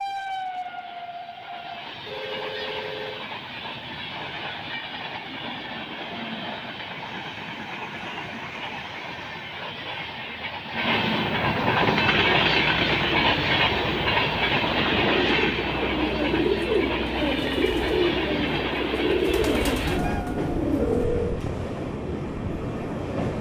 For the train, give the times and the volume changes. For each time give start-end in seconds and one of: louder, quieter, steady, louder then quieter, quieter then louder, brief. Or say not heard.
0.0-23.3 louder then quieter.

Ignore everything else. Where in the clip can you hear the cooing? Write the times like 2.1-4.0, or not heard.
11.8-21.1.